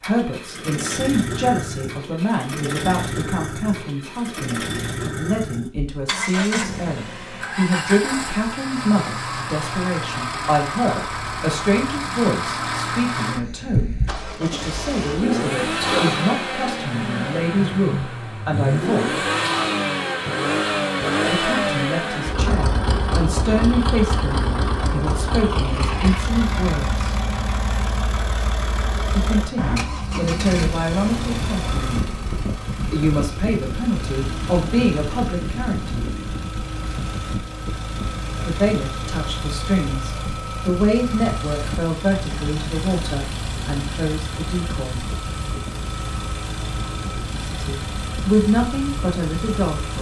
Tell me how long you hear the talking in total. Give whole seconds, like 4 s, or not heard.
40 s.